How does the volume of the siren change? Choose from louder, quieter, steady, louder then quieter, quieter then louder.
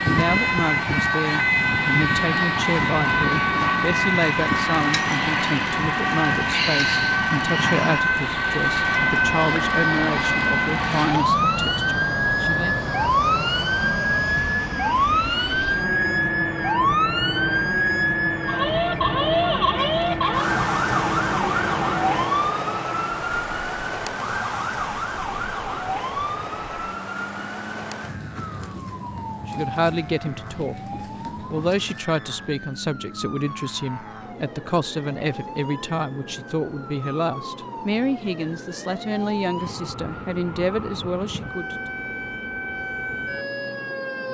quieter.